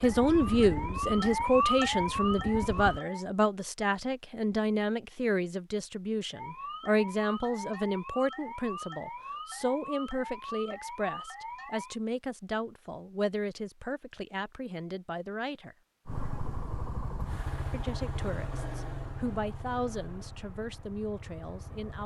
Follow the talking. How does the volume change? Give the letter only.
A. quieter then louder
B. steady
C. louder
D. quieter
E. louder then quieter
D.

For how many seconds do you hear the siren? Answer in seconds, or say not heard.
9 s.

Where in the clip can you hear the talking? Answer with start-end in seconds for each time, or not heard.
0.0-15.8, 17.7-22.0.